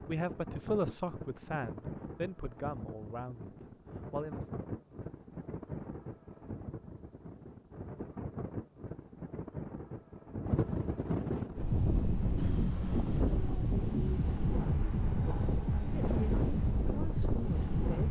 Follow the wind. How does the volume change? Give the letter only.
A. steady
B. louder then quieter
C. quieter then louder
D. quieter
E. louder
E.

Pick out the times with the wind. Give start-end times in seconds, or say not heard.
0.0-18.0.